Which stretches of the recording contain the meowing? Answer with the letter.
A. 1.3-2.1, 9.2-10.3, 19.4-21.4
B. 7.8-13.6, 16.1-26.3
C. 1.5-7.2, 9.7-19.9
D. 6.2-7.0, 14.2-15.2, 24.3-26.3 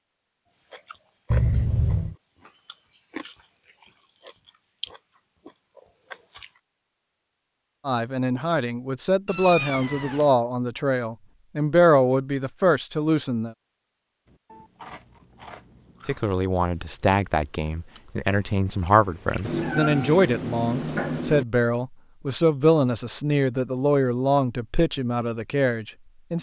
A.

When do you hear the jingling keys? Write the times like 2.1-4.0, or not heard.
not heard.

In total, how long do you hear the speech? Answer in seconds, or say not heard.
16 s.